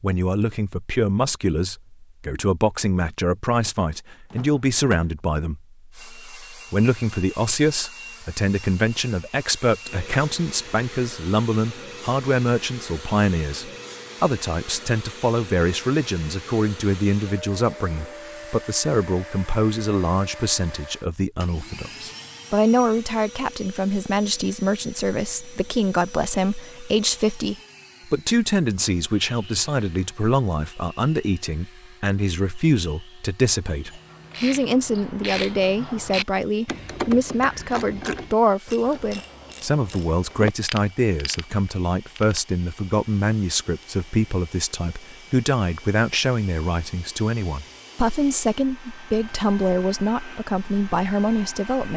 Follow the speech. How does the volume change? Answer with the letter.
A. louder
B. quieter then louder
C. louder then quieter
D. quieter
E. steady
E.